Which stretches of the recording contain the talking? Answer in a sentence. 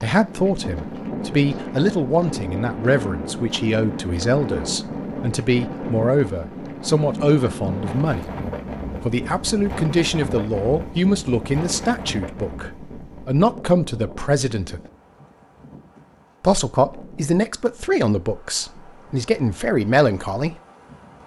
The talking can be heard from 0.0 to 8.3 s, from 9.0 to 14.8 s and from 16.4 to 20.6 s.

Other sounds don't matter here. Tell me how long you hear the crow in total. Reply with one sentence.
You can't hear the crow here.